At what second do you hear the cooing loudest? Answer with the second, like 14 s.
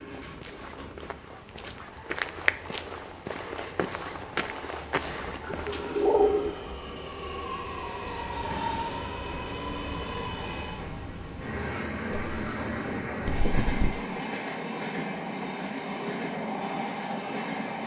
6 s.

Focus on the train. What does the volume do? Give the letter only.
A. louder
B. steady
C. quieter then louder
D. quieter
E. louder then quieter
A.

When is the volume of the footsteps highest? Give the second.
2 s.